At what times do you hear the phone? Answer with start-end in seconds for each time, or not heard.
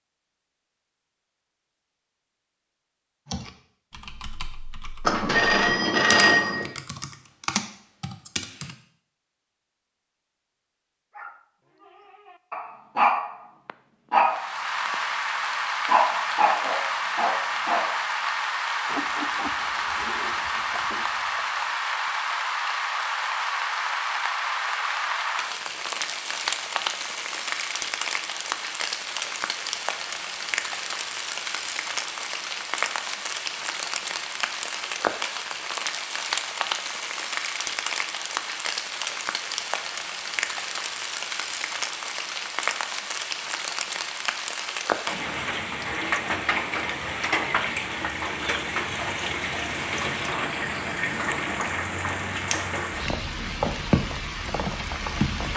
5.0-6.7.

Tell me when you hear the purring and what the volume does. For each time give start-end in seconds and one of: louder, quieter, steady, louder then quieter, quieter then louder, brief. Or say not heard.
not heard.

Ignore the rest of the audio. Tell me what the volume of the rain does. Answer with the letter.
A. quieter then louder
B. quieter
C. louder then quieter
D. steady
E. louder
D.